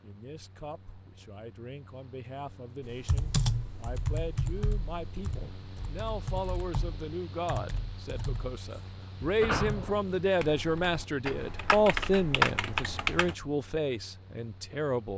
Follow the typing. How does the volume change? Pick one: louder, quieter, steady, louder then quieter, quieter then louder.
quieter then louder.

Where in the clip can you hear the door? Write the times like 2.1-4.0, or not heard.
9.4-10.1.